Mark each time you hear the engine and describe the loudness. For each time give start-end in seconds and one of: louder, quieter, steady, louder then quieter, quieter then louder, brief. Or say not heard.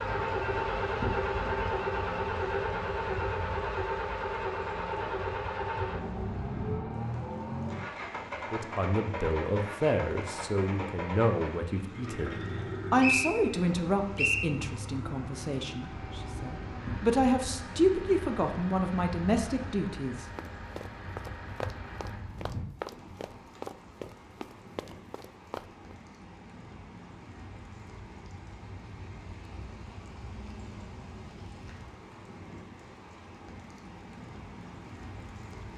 0.0-22.2 quieter.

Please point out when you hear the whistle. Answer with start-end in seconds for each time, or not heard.
13.0-14.5.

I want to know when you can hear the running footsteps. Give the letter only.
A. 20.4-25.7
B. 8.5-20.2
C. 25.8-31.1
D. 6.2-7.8
A.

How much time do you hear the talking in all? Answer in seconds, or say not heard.
12 s.